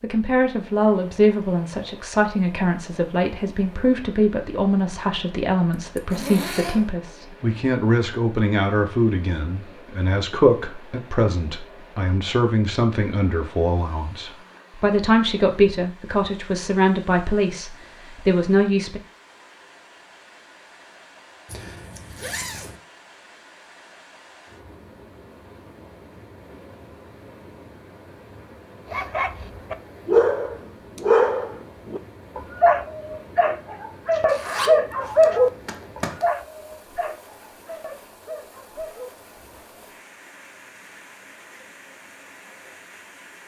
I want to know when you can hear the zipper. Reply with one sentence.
You can hear the zipper from 5.7 to 6.9 s, from 21.4 to 22.8 s and from 34.2 to 36.2 s.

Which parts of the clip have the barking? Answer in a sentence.
The barking can be heard from 28.9 to 39.6 s.